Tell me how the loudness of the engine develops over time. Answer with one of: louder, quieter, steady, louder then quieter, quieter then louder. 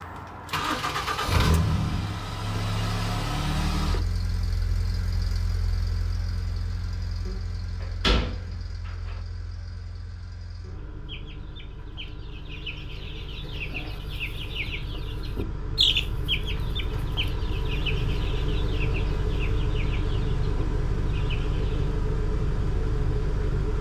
quieter then louder.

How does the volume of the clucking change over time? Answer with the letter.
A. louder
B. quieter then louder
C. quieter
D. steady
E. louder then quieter
E.